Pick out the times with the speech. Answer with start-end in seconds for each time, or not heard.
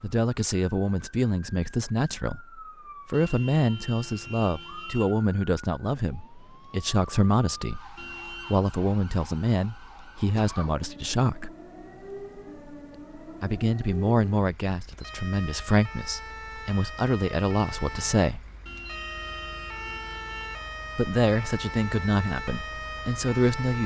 0.0-11.6, 13.4-18.4, 20.9-23.8.